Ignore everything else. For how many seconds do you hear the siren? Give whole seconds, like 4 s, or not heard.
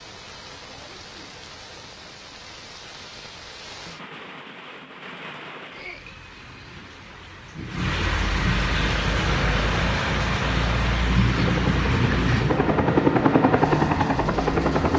not heard.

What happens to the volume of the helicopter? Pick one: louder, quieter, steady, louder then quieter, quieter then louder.
louder.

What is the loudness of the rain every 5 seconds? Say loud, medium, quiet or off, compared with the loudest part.
quiet, loud, loud.